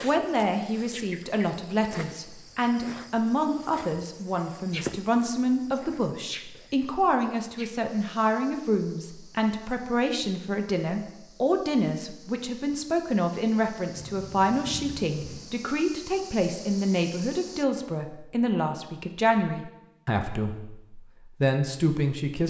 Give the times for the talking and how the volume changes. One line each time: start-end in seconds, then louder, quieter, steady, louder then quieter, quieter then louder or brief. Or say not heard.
0.0-22.4 steady.